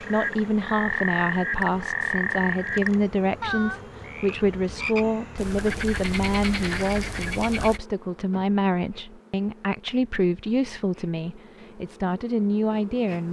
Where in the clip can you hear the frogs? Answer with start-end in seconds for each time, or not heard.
0.0-7.8.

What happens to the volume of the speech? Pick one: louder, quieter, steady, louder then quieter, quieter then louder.
steady.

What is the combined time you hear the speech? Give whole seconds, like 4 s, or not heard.
13 s.